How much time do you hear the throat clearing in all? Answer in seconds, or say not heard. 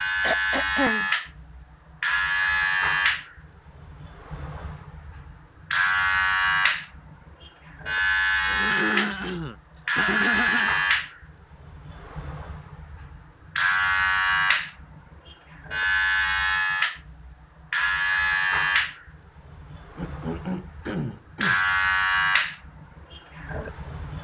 5 s.